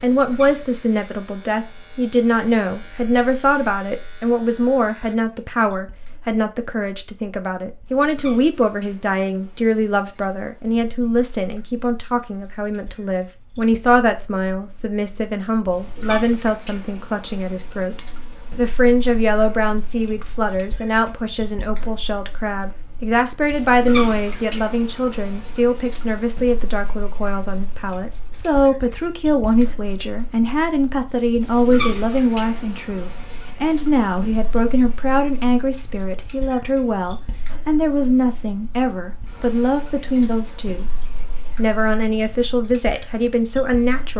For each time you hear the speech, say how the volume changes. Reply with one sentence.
The speech can be heard from 0.0 to 41.0 s, at a steady volume; and briefly from 41.5 to 44.1 s.